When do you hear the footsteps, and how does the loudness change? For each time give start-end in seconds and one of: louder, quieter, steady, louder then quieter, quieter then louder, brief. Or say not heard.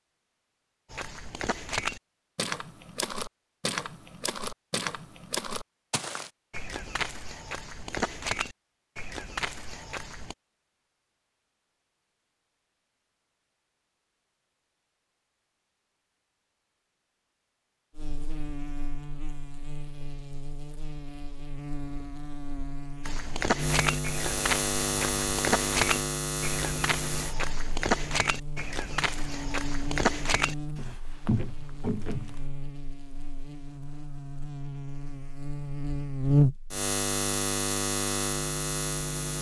0.9-10.3 steady
23.0-32.4 steady.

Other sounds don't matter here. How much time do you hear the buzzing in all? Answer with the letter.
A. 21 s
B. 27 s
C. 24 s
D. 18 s
A.